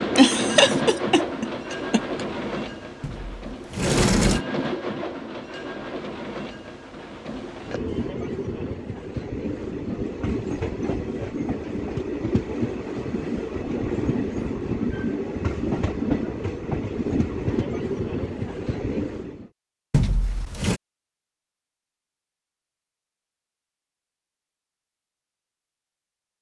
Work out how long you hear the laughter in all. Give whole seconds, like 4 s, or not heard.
2 s.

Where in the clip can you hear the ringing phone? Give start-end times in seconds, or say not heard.
not heard.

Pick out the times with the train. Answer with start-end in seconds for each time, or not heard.
0.0-19.5.